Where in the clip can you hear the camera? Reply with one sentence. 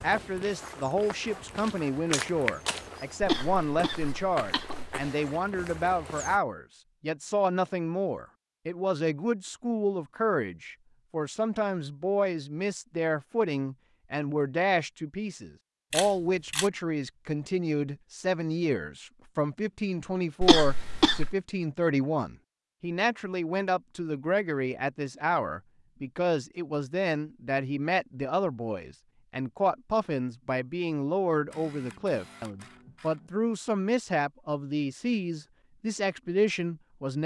The camera can be heard from 2.1 to 2.9 s, from 15.9 to 16.7 s and from 31.4 to 33.3 s.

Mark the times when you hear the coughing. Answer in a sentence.
You can hear the coughing from 3.2 to 5.0 s and from 20.4 to 21.4 s.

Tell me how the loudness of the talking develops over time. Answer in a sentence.
The volume of the talking stays about the same.